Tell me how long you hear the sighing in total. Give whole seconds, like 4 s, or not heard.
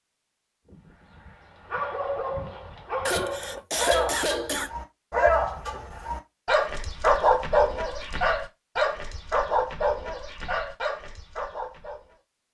2 s.